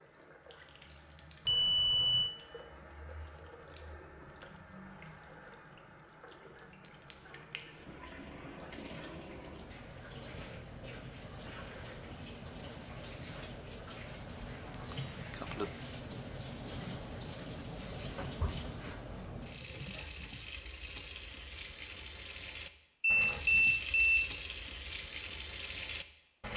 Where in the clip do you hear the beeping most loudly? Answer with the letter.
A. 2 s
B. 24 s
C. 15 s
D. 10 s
B.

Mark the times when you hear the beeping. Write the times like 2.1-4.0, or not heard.
1.4-2.4, 14.3-15.7, 23.0-24.3.